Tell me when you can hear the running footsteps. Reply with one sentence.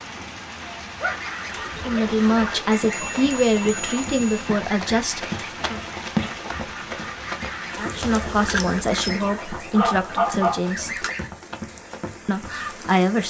The running footsteps can be heard from 2.7 to 12.9 s.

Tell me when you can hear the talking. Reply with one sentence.
The talking can be heard from 1.6 to 5.8 s, from 7.8 to 11.1 s and from 12.2 to 13.2 s.